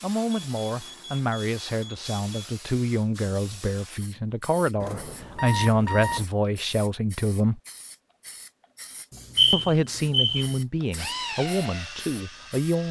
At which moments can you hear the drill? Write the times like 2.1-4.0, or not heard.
10.9-12.8.